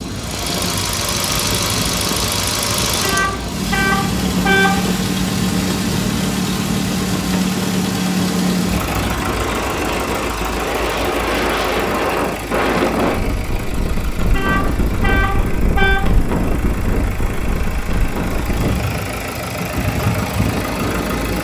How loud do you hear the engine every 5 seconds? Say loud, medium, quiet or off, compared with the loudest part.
loud, loud, medium, medium, medium.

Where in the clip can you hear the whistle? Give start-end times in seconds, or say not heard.
not heard.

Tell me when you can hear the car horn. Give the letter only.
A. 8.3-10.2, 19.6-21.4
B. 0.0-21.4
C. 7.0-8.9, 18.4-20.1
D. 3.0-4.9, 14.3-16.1
D.